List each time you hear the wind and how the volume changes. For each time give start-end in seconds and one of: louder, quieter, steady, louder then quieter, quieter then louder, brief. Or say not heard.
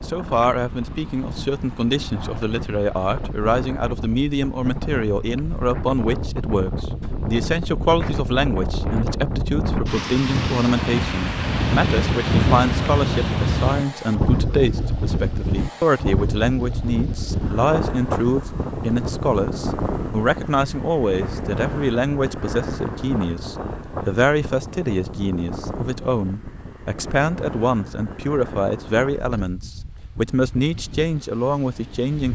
0.0-32.2 louder then quieter.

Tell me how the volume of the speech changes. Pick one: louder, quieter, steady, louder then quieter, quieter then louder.
steady.